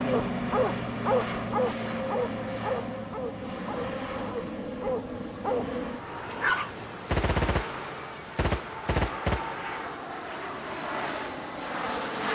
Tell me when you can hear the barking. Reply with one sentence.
The barking can be heard from 0.1 to 6.7 s.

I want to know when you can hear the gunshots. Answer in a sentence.
You can hear the gunshots from 7.0 to 9.7 s.